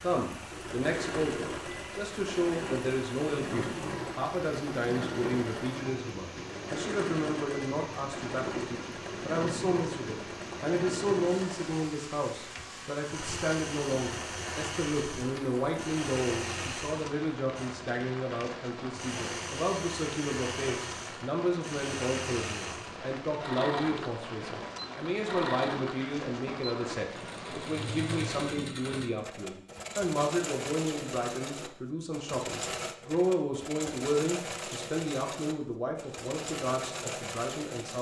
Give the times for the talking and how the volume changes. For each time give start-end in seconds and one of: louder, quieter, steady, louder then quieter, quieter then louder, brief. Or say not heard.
0.0-37.9 steady.